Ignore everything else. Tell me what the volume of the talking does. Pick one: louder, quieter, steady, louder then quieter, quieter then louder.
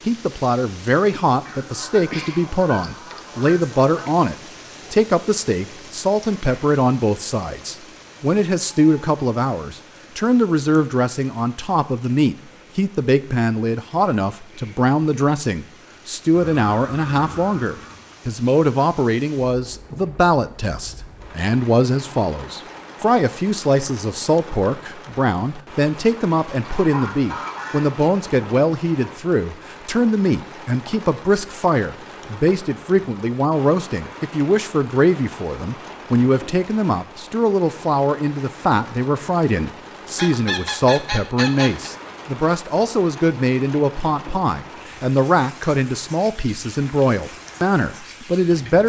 steady.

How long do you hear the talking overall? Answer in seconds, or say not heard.
49 s.